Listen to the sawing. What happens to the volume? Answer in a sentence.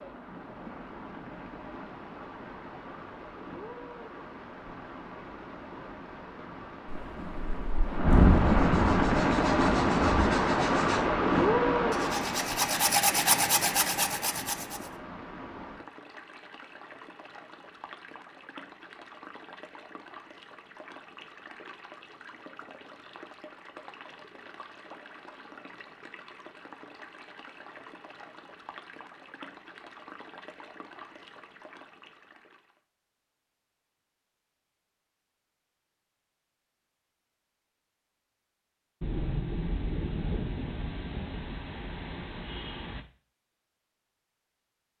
The loudness of the sawing goes up.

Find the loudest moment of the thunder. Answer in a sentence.
The volume of the thunder peaks at 8 seconds.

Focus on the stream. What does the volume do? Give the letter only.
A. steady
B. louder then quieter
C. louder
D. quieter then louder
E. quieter
B.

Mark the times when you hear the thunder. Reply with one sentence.
The thunder can be heard from 6.8 to 10.3 s and from 39.0 to 43.0 s.